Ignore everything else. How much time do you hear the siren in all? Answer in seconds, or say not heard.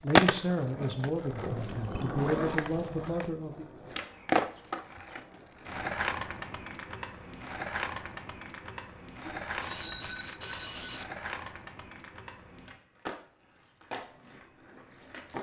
not heard.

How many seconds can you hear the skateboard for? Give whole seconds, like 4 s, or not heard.
15 s.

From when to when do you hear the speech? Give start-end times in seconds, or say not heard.
0.0-3.6.